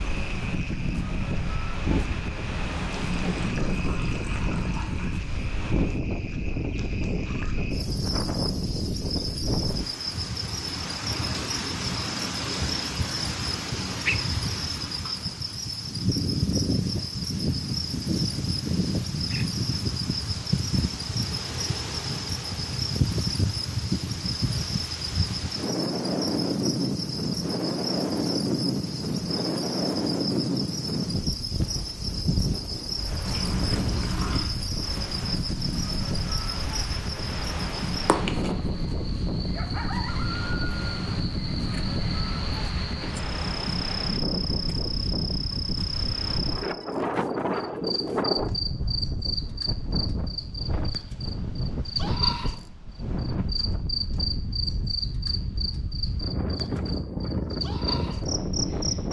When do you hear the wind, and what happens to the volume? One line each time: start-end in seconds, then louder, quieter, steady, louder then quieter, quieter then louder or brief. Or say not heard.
0.0-59.0 steady.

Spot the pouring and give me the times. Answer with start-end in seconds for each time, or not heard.
3.0-5.2, 33.2-34.5.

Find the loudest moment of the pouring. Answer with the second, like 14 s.
34 s.